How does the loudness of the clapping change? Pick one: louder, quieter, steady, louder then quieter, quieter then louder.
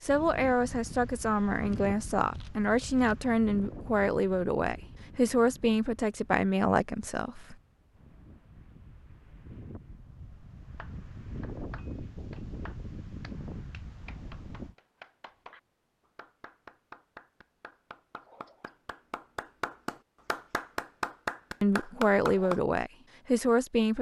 louder.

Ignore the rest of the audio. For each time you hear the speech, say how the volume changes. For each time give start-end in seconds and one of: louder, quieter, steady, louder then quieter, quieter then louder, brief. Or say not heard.
0.0-7.5 steady
21.6-23.9 brief.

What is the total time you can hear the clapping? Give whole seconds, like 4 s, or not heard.
12 s.